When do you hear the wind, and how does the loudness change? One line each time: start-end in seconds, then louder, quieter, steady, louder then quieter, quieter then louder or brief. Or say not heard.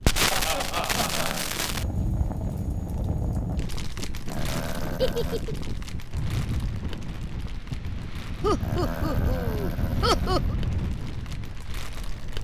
0.0-12.4 louder.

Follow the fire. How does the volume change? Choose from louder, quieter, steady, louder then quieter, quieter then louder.
quieter.